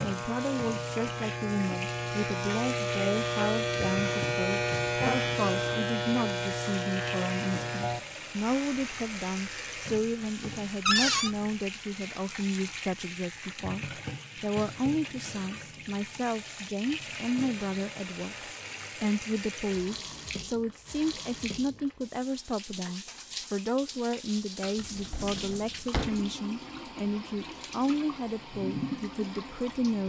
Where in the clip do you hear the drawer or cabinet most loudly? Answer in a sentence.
The volume of the drawer or cabinet peaks at 11 seconds.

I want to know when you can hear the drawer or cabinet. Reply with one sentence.
The drawer or cabinet can be heard from 10.8 to 11.3 s and from 24.8 to 26.2 s.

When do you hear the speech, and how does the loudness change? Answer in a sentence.
You can hear the speech from 0.0 to 30.0 s, at a steady volume.